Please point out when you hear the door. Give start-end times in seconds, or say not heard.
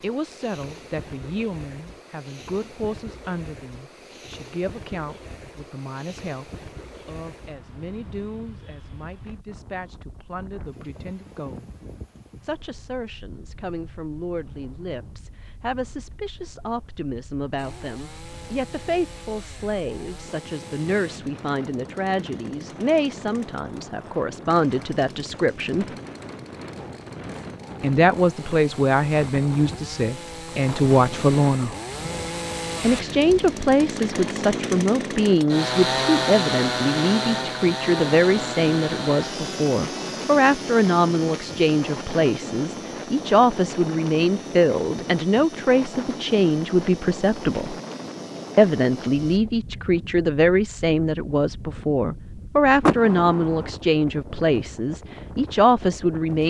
52.8-53.7.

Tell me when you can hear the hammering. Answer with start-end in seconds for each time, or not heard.
not heard.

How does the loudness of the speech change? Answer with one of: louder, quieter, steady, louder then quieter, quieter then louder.
louder.